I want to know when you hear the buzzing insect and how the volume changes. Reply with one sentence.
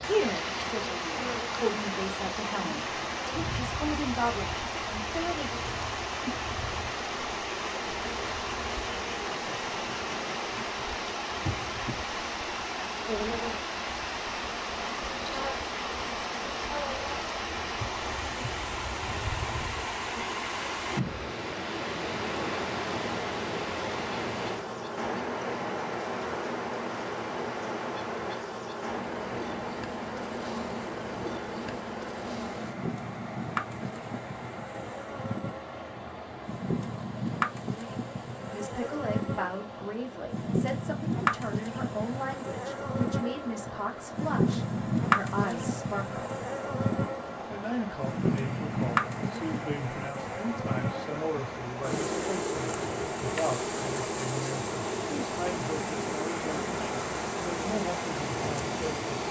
The buzzing insect can be heard from 0.0 to 59.2 s, getting louder.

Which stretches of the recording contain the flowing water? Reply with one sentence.
You can hear the flowing water from 0.0 to 59.2 s.